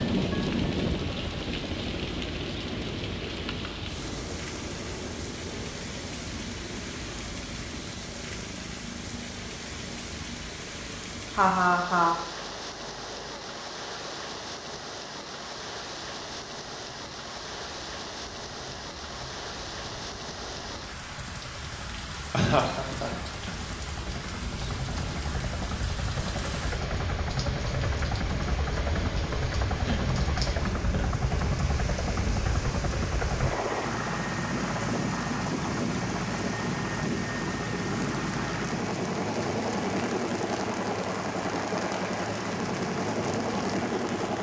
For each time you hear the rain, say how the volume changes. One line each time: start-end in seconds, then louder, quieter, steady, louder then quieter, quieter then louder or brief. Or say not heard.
0.0-44.3 steady.